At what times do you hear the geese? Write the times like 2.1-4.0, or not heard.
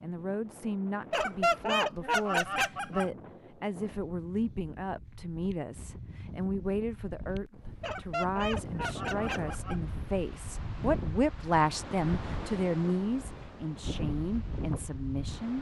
1.1-3.1, 7.8-9.8.